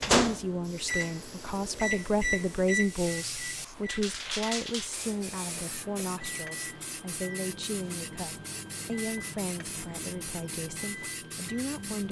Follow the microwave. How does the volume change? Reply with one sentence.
The volume of the microwave goes down.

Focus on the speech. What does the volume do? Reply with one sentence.
The loudness of the speech goes down.